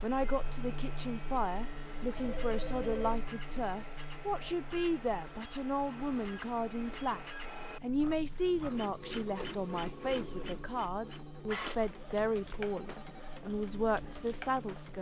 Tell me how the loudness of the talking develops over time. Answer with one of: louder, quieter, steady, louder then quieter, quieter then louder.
steady.